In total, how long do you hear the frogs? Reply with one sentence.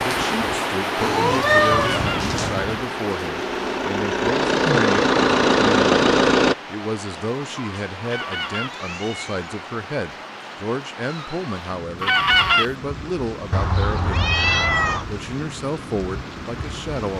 The frogs can't be heard in this clip.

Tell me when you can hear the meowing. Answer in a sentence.
The meowing can be heard from 1.0 to 2.5 s, from 8.6 to 9.5 s and from 13.5 to 15.1 s.